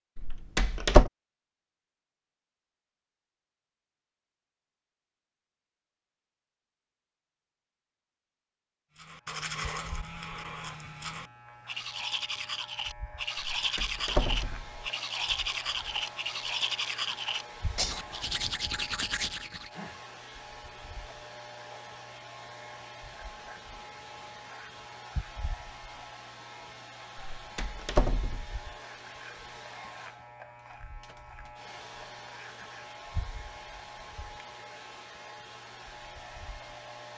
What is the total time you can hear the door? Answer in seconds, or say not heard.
4 s.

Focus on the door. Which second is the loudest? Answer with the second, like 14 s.
1 s.